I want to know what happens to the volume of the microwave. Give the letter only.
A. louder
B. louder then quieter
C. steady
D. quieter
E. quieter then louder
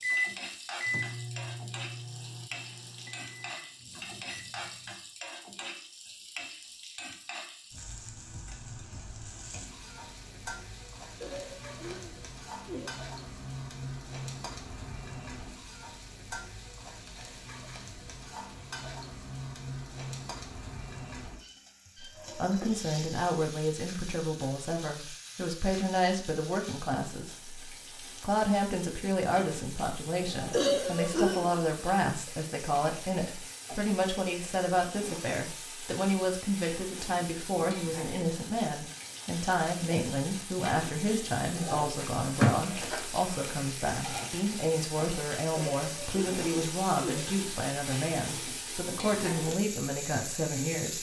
D.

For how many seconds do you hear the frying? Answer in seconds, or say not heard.
51 s.